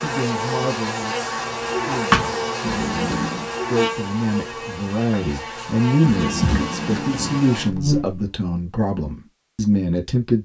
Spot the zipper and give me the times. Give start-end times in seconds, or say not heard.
2.6-3.5, 6.0-7.8.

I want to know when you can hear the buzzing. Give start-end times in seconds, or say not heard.
0.0-8.3.